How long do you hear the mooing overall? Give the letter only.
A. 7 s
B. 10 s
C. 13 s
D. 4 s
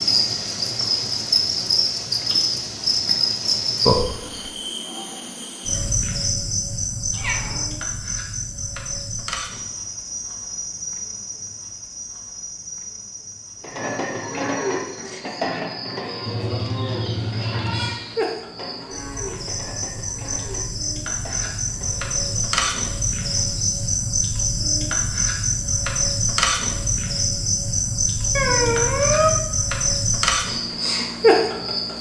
B.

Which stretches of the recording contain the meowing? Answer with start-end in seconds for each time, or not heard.
7.1-7.7, 16.2-17.9, 28.4-29.4.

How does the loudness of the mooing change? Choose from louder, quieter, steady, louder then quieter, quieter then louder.
quieter.